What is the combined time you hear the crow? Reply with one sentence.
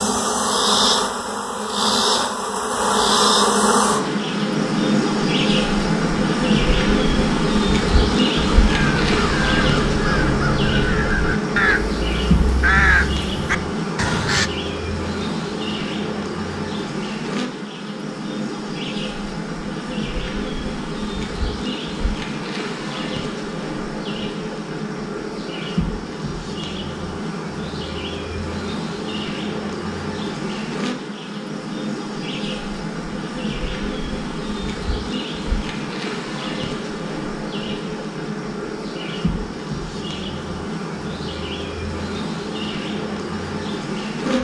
You can hear the crow for 6 seconds altogether.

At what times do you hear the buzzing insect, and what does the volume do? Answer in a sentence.
The buzzing insect can be heard from 0.0 to 44.4 s, getting quieter.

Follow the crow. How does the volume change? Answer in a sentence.
The loudness of the crow goes up, then down.